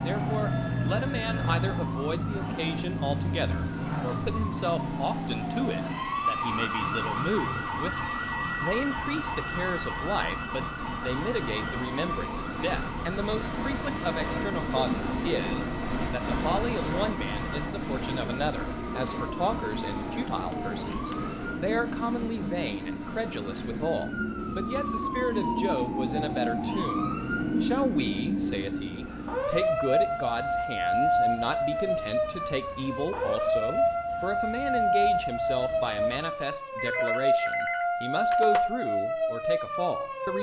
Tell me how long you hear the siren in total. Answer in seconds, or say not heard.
40 s.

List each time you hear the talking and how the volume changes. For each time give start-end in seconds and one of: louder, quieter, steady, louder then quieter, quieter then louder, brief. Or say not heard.
0.0-40.3 steady.